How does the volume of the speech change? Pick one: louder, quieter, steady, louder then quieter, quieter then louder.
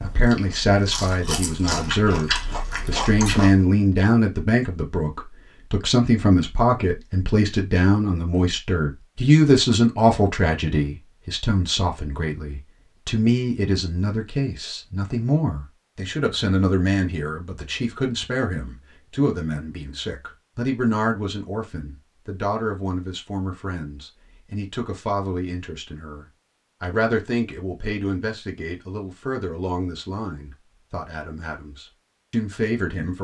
quieter.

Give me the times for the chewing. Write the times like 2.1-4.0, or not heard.
0.0-3.6.